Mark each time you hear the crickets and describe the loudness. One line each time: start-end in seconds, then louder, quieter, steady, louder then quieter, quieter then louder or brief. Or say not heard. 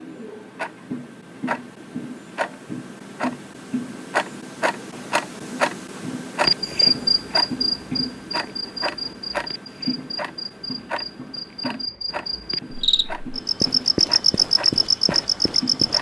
6.4-15.9 quieter then louder.